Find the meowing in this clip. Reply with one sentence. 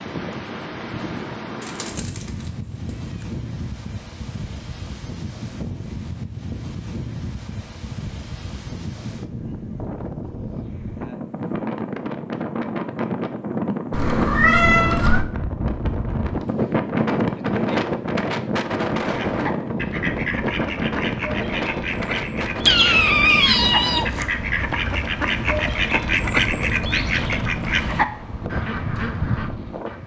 You can hear the meowing from 1.6 to 2.5 s, from 13.9 to 15.2 s and from 22.6 to 24.2 s.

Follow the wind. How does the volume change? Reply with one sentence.
The loudness of the wind goes up, then down.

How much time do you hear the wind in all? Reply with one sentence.
You can hear the wind for 30 seconds altogether.